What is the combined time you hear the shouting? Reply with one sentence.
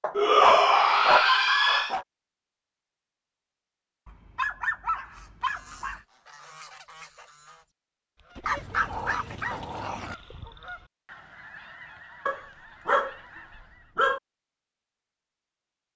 You can hear the shouting for 2 seconds altogether.